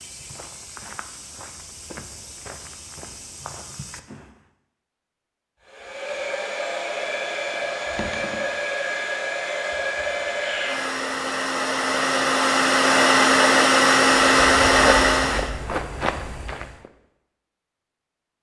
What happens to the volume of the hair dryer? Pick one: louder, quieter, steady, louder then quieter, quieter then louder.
louder.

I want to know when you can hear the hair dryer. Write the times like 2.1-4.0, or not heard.
5.7-15.5.